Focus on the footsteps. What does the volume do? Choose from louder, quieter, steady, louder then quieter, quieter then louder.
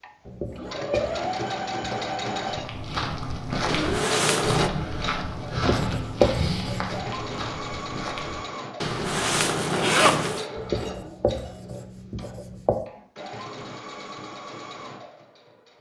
quieter.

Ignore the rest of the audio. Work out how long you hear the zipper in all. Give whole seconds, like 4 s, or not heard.
3 s.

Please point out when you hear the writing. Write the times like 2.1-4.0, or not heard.
0.2-2.3, 5.5-7.0, 10.6-12.8.